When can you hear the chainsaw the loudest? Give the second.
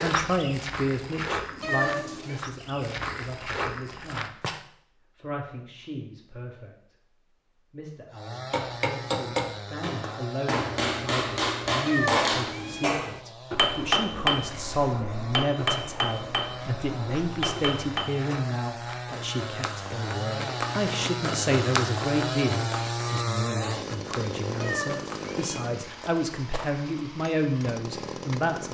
23 s.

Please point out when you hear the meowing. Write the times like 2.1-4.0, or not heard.
1.6-2.4, 11.8-12.9, 24.6-25.6.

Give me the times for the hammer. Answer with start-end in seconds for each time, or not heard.
8.5-18.1.